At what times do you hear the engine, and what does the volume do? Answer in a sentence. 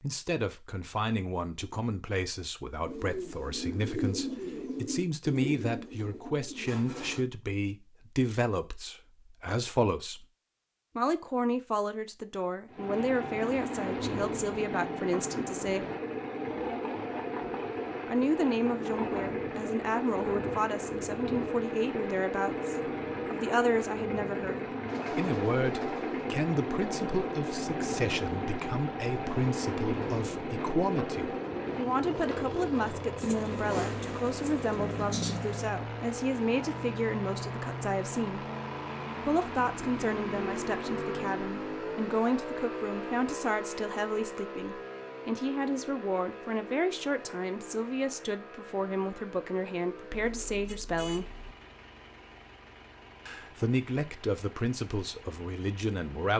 You can hear the engine from 12.7 to 56.3 s, getting quieter.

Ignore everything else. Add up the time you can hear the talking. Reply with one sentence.
You can hear the talking for 51 seconds altogether.